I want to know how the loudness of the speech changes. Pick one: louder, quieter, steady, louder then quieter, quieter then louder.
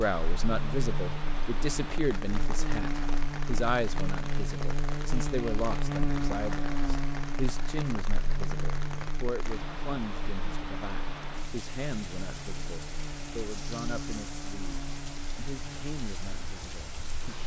quieter.